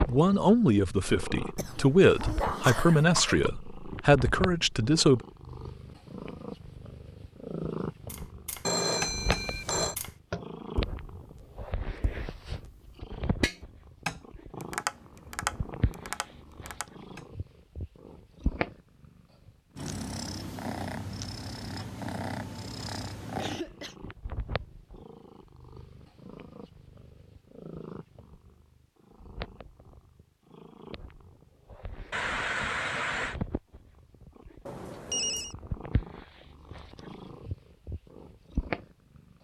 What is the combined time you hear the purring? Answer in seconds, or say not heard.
39 s.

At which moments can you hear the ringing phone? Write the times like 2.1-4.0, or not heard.
8.7-9.9, 34.6-35.5.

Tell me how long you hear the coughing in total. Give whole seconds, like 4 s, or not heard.
4 s.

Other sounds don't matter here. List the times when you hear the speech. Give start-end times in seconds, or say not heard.
0.1-5.2.